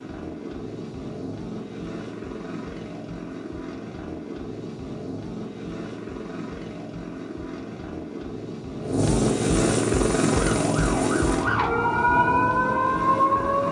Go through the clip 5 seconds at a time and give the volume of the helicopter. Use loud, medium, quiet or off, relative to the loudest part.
medium, loud, loud.